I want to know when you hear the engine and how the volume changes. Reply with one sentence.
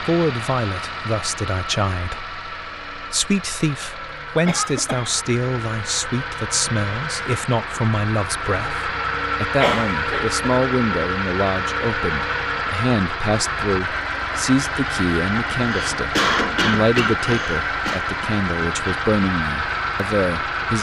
The engine can be heard from 0.0 to 20.7 s, getting louder.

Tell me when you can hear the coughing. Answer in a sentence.
You can hear the coughing from 4.5 to 5.2 s, from 9.6 to 10.3 s and from 15.6 to 18.0 s.